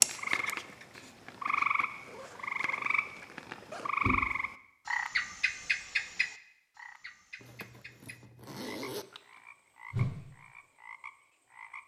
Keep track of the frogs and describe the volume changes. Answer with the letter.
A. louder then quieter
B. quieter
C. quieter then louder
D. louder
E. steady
B.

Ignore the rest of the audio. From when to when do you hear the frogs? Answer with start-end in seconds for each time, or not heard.
0.0-11.8.